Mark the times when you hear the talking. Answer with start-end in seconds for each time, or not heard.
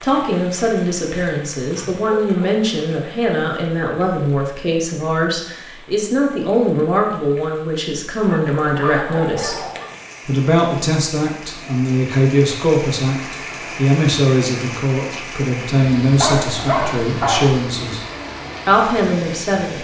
0.0-9.6, 10.2-18.0, 18.6-19.7.